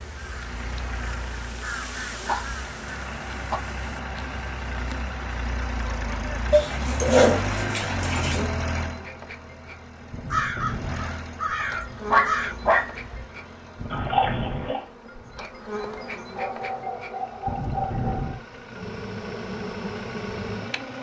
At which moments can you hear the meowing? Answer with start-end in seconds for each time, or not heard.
13.9-14.8.